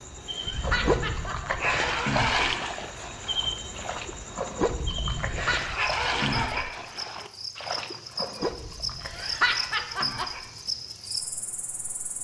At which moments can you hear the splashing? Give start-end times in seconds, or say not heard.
0.6-9.5.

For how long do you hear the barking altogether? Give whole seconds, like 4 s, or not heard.
6 s.